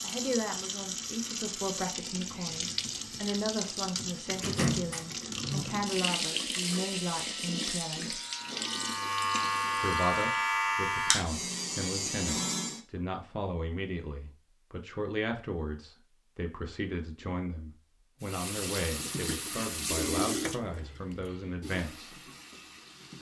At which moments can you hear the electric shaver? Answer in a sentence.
You can hear the electric shaver from 6.8 to 12.8 s.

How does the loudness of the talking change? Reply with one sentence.
The volume of the talking stays about the same.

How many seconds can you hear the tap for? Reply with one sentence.
You can hear the tap for 15 seconds altogether.